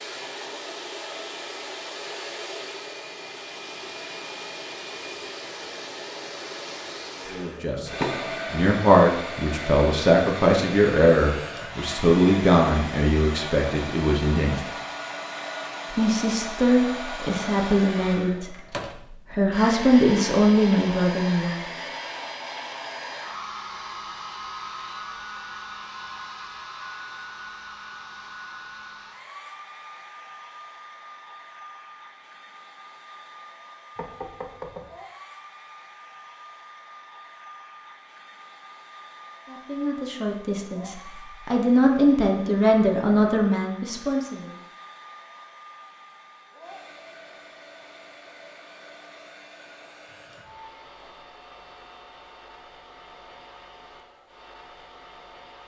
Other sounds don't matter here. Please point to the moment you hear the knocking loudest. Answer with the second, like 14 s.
8 s.